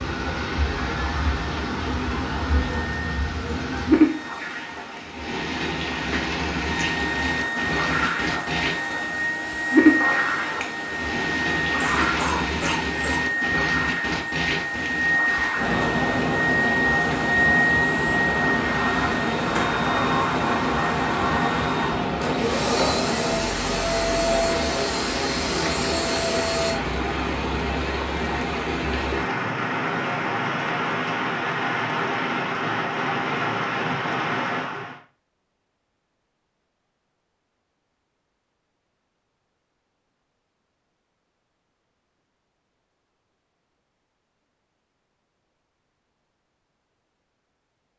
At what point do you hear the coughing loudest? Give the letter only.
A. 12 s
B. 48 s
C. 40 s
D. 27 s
A.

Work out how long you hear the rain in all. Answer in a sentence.
The rain can be heard for 35 seconds in total.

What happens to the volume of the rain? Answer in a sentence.
The loudness of the rain stays about the same.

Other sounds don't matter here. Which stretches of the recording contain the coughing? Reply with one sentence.
The coughing can be heard from 11.8 to 13.3 s.